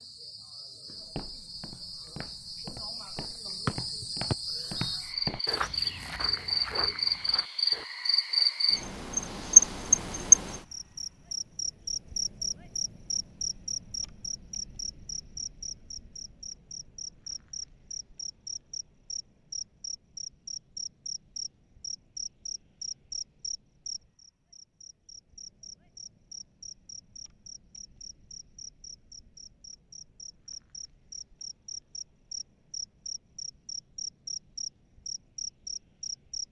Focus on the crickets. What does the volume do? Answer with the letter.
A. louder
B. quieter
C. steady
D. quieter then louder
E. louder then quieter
E.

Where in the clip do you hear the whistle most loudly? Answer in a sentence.
The volume of the whistle peaks at 4 seconds.